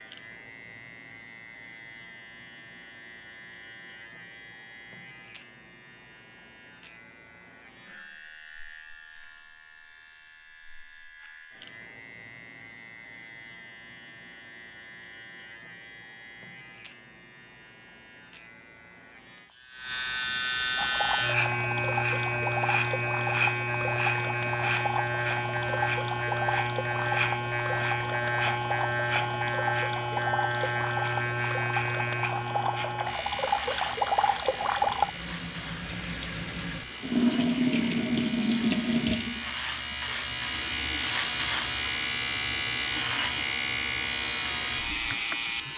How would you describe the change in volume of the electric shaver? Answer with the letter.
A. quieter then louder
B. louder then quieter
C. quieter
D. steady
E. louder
E.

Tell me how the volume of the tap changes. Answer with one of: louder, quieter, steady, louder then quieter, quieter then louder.
louder then quieter.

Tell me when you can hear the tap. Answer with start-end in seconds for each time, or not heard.
20.8-45.7.